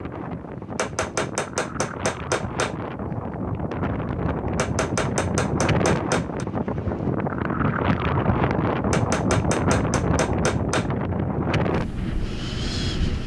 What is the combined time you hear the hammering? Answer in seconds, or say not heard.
6 s.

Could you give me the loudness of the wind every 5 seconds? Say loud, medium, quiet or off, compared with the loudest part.
medium, loud, loud.